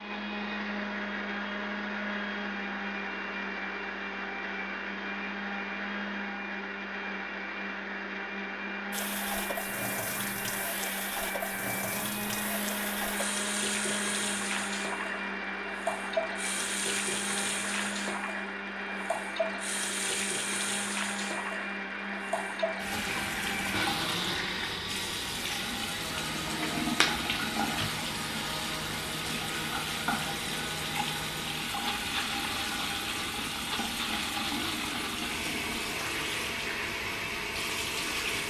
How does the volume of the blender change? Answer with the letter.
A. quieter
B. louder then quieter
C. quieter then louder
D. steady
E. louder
D.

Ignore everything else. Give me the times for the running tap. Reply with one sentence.
The running tap can be heard from 8.9 to 38.4 s.